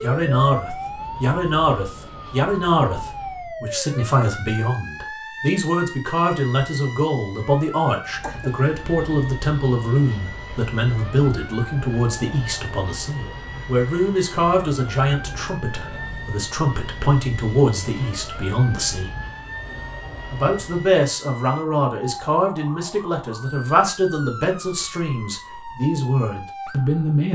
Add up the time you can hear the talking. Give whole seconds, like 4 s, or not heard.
26 s.